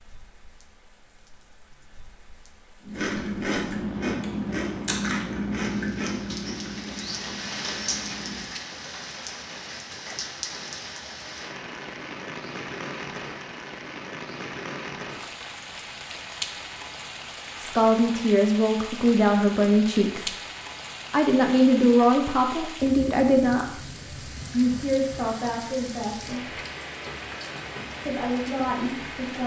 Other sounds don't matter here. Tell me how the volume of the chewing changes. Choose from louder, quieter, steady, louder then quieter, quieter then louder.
quieter.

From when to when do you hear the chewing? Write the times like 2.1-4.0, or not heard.
2.8-8.6.